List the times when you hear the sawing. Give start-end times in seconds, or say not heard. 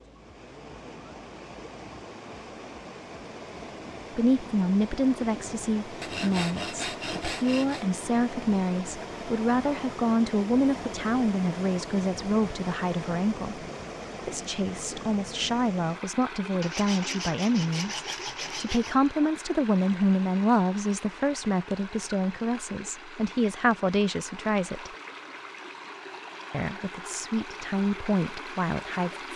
6.0-7.8, 16.6-18.9.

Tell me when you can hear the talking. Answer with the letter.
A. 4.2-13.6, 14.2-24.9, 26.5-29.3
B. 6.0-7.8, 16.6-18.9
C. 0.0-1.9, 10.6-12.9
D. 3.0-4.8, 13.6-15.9
A.